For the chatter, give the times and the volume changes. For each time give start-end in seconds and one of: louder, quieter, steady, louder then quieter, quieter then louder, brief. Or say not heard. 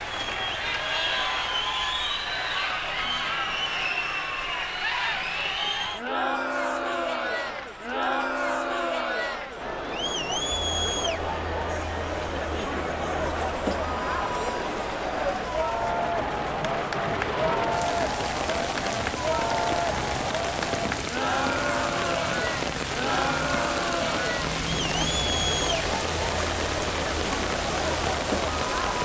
0.0-29.0 steady.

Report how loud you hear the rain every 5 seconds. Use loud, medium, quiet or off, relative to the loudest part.
medium, quiet, medium, loud, loud, loud.